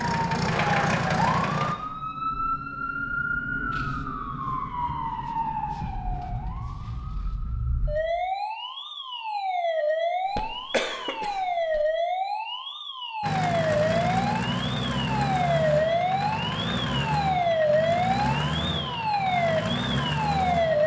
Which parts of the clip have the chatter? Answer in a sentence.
You can't hear the chatter here.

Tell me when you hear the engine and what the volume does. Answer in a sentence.
You can hear the engine briefly from 0.0 to 1.8 s; and from 13.2 to 20.8 s, at a steady volume.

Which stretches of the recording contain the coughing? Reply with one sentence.
The coughing can be heard from 10.2 to 11.8 s.